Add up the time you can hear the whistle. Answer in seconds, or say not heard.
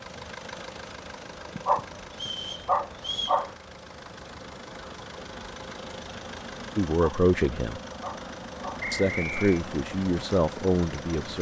2 s.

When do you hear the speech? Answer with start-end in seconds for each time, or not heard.
6.8-7.8, 8.9-11.3.